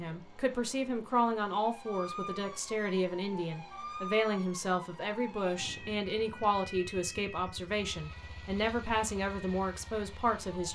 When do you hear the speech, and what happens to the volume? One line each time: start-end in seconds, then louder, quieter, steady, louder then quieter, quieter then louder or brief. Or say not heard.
0.0-10.6 steady.